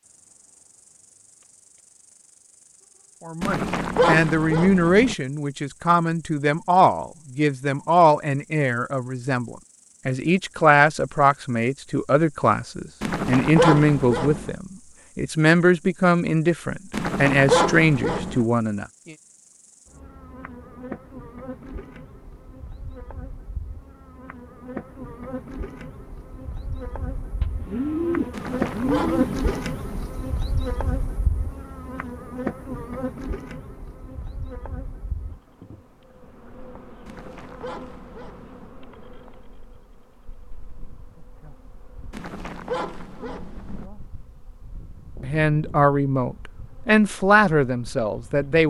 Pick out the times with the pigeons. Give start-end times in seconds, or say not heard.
27.4-29.5.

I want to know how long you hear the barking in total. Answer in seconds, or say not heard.
10 s.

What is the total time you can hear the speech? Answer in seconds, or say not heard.
19 s.